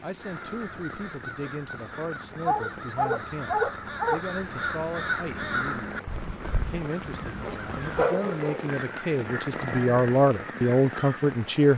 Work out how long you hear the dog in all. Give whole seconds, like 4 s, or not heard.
3 s.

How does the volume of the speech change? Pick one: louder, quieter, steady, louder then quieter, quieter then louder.
louder.